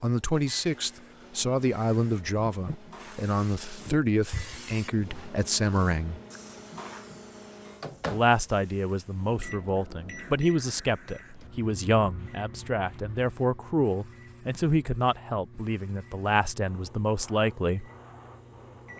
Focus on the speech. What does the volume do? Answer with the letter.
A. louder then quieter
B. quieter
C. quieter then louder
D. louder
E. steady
E.